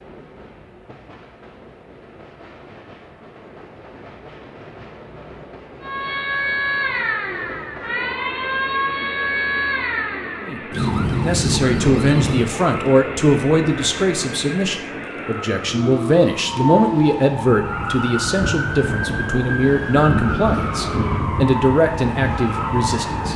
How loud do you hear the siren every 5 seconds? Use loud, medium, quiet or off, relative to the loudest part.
off, loud, loud, loud, loud.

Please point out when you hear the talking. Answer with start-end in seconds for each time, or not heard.
10.4-23.3.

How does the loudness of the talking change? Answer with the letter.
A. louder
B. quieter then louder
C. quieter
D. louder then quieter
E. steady
E.